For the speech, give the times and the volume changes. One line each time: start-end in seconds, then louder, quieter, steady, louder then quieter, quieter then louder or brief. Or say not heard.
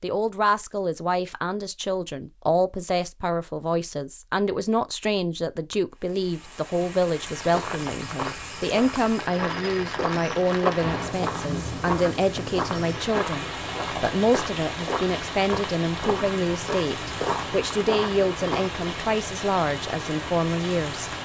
0.0-21.2 steady.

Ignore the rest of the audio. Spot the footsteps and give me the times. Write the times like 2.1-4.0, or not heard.
7.2-18.8.